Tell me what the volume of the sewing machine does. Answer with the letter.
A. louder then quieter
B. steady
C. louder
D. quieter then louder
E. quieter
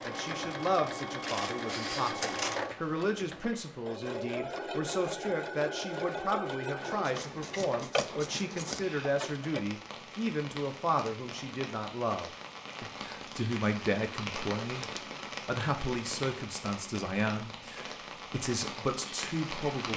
B.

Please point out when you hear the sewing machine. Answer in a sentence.
The sewing machine can be heard from 0.0 to 9.7 s.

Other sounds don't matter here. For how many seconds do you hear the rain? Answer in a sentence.
You can hear the rain for 13 seconds altogether.